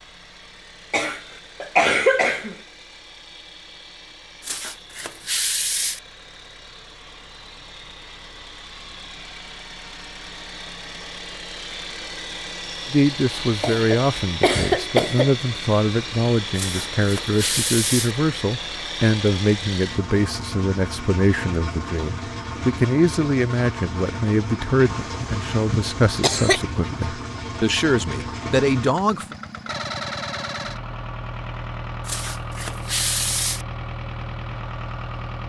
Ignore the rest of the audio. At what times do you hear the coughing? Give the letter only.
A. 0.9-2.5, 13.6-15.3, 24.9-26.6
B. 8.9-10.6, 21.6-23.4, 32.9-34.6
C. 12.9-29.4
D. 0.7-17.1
A.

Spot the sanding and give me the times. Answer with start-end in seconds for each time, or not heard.
4.4-6.0, 16.6-18.1, 32.0-33.6.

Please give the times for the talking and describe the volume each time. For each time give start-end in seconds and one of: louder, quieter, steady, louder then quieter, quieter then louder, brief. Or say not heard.
12.9-29.4 steady.